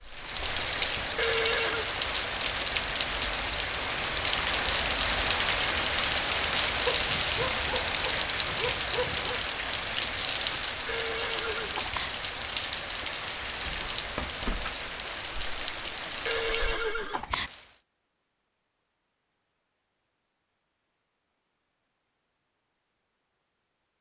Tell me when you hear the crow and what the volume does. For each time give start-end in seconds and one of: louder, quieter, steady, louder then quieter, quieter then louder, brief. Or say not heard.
not heard.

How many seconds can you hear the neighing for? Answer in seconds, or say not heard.
3 s.